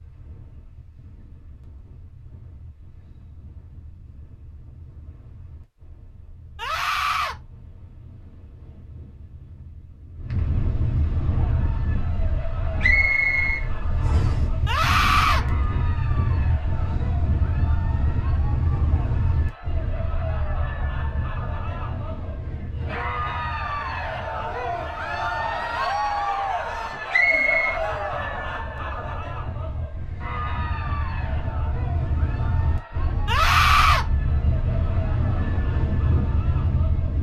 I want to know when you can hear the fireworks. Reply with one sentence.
You can't hear the fireworks here.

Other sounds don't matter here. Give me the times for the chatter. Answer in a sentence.
You can hear the chatter from 11.1 to 37.1 s.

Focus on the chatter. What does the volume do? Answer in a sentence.
The loudness of the chatter goes up, then down.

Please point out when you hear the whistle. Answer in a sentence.
You can hear the whistle from 12.8 to 14.3 s and from 27.1 to 27.8 s.